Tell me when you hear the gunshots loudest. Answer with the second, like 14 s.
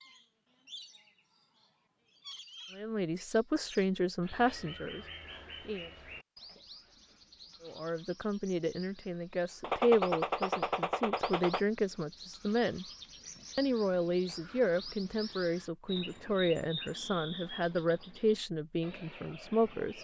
10 s.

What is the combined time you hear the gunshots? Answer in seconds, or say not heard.
2 s.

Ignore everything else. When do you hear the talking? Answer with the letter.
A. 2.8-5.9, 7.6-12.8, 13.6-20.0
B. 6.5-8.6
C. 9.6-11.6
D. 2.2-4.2
A.